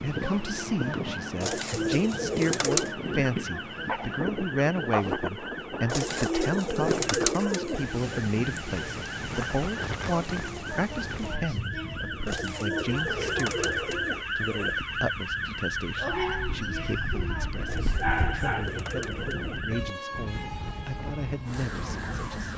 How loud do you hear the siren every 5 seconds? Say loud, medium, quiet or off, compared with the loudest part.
medium, medium, loud, loud, medium.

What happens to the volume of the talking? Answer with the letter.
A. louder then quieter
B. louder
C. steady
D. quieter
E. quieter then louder
D.